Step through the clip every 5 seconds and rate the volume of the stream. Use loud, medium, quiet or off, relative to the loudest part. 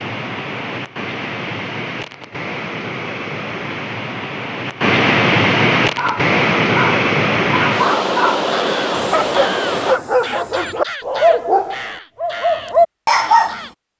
medium, loud, off.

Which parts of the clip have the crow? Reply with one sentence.
You can hear the crow from 8.4 to 13.7 s.